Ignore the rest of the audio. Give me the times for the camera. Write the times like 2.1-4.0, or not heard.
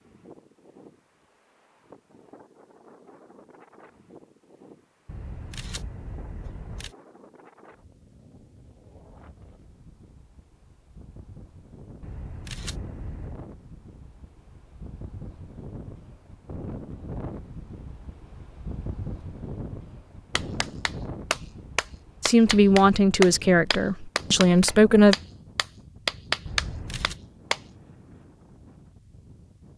5.0-7.0, 12.0-13.4, 26.4-27.2.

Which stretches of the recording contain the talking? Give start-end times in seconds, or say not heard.
22.2-25.1.